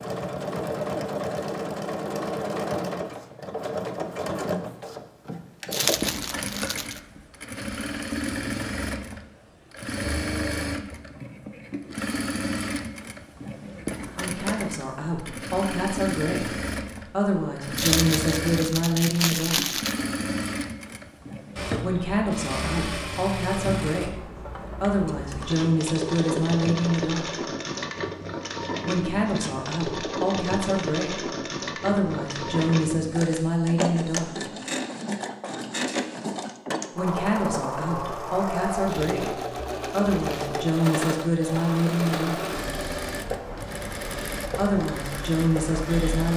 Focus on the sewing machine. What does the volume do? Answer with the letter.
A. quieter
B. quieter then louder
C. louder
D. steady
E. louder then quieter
D.